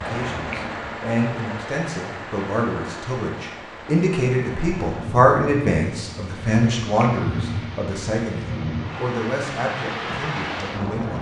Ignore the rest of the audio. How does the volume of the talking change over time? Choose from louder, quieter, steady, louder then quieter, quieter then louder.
louder then quieter.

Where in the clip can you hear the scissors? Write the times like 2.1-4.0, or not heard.
not heard.